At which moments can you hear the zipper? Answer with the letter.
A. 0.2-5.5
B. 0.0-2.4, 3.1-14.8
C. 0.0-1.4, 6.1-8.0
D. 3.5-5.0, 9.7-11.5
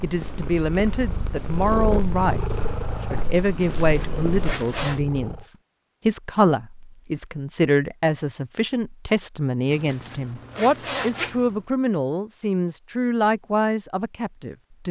D.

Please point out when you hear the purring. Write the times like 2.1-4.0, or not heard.
0.2-5.5.